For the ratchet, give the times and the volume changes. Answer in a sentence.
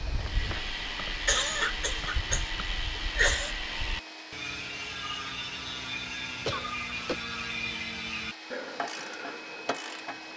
The ratchet can be heard from 0.0 to 10.3 s, at a steady volume.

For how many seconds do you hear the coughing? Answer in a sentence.
The coughing can be heard for 3 seconds in total.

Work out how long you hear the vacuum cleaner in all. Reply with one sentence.
You can hear the vacuum cleaner for 10 seconds altogether.